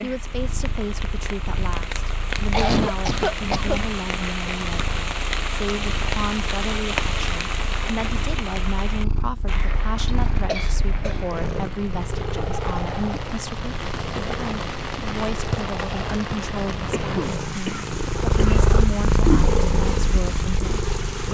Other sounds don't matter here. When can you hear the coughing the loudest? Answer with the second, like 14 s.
3 s.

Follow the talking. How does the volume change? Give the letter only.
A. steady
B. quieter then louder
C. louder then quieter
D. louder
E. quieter
A.